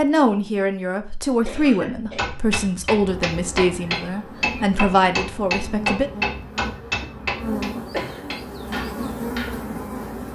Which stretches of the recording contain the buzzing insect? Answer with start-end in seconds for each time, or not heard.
3.0-10.3.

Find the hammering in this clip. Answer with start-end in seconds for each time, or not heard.
1.9-9.6.